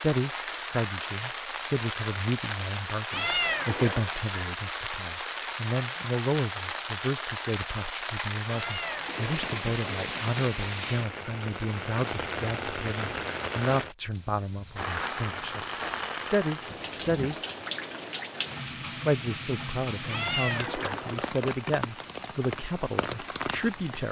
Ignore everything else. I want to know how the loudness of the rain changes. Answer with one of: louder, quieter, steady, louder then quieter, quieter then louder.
steady.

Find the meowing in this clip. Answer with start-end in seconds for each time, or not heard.
3.1-4.2, 8.4-10.1, 20.1-21.3.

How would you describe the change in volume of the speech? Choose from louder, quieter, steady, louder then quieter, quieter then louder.
steady.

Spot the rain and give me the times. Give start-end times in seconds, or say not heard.
0.0-24.0.